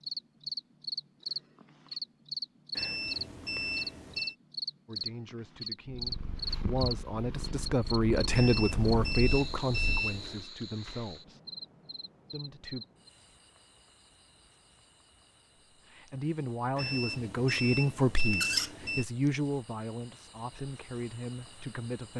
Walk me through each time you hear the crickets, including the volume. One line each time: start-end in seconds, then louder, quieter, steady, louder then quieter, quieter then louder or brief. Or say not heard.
0.0-22.1 quieter then louder.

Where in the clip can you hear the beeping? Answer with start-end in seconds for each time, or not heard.
2.8-4.3, 8.3-10.5, 16.8-19.1.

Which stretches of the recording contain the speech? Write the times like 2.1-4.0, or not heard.
4.8-11.4, 12.3-12.8, 15.8-22.1.